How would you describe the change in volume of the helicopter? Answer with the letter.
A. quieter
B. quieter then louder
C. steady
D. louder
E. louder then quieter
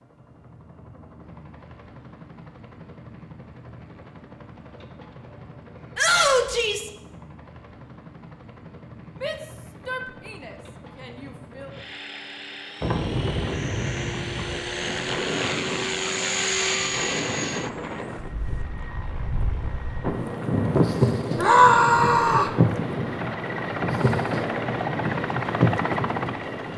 D.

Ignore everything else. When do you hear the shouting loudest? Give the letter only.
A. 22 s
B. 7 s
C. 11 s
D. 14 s
A.